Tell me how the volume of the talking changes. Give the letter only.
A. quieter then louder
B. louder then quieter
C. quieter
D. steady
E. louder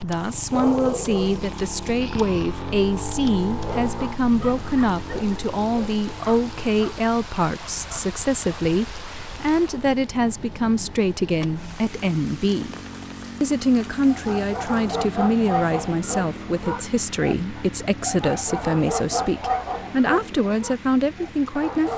D.